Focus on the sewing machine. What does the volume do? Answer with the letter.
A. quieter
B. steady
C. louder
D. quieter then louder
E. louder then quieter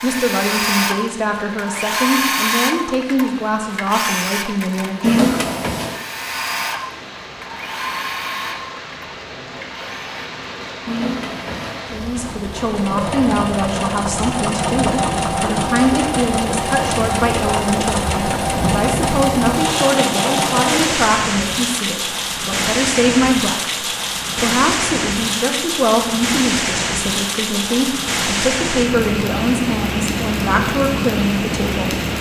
D.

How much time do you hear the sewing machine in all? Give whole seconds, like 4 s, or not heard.
21 s.